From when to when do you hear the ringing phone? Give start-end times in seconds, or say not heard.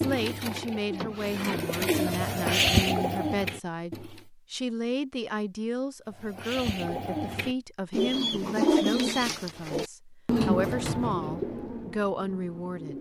not heard.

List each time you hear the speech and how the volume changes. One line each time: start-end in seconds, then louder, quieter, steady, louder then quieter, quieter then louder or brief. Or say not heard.
0.0-12.9 steady.